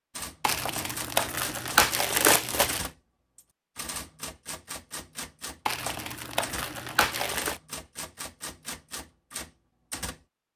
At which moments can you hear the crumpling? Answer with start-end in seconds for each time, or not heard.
0.4-2.9, 5.7-7.6.